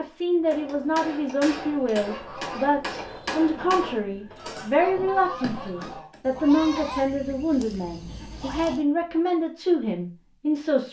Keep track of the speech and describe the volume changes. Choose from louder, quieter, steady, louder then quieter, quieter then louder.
steady.